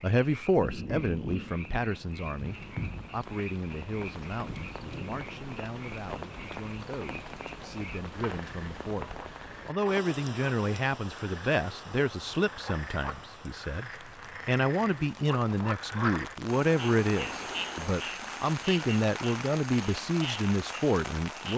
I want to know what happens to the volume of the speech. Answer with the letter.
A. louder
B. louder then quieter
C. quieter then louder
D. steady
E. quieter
C.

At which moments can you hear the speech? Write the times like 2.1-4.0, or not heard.
0.0-21.5.